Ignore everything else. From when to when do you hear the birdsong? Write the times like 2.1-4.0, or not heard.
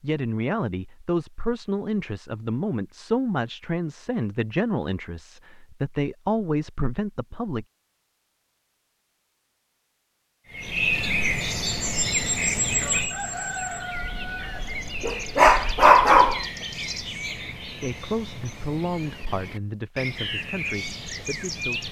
10.5-21.8.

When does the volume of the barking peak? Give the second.
16 s.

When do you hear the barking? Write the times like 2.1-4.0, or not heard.
13.9-16.4.